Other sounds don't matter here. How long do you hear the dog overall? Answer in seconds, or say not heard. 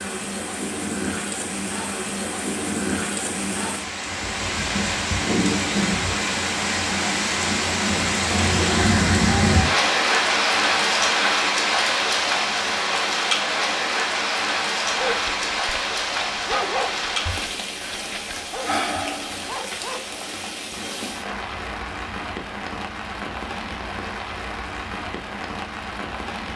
5 s.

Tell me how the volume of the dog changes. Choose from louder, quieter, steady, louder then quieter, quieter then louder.
louder then quieter.